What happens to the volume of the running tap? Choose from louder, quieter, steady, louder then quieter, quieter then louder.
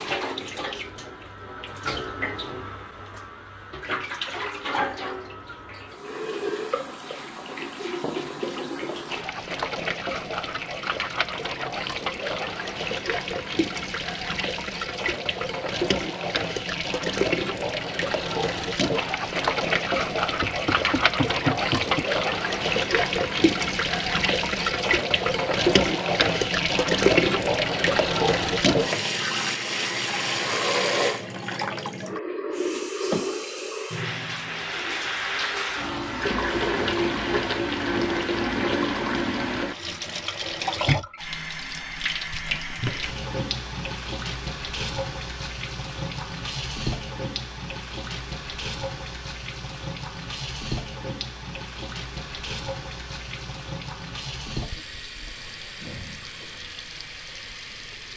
louder then quieter.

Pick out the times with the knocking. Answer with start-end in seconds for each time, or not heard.
20.4-22.1.